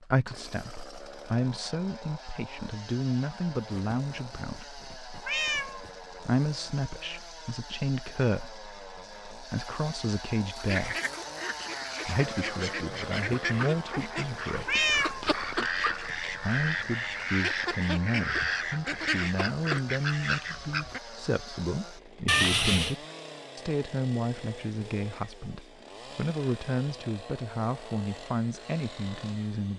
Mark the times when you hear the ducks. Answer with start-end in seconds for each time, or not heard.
10.6-21.0.